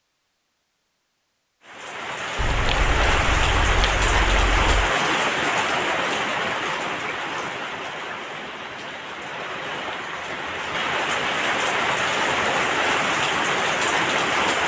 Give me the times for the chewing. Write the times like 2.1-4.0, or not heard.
2.4-4.9.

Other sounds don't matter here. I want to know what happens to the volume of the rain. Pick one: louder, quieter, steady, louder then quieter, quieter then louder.
quieter then louder.